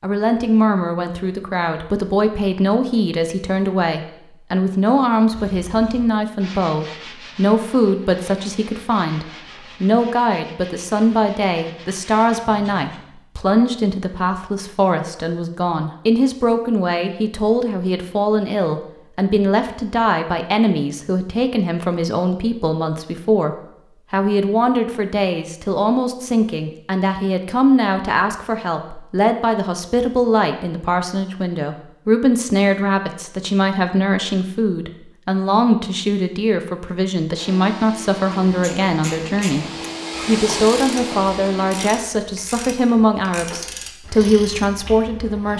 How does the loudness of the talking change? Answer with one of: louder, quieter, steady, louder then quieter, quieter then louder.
steady.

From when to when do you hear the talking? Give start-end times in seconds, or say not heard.
0.0-45.5.